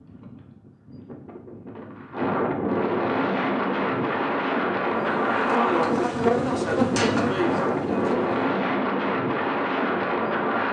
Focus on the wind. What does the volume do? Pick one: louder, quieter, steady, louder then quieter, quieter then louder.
louder.